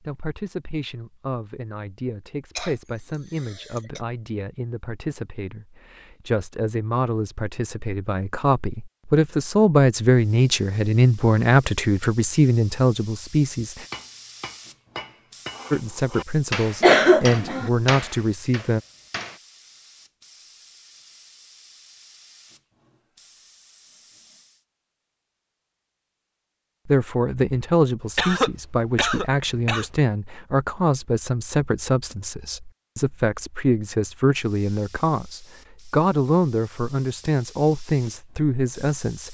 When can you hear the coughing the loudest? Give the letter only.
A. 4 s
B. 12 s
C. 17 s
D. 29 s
C.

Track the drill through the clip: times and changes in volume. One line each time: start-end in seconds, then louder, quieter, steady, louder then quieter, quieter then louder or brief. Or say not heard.
not heard.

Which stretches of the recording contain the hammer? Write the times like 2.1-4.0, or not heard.
13.9-19.4.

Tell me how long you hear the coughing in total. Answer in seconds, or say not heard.
4 s.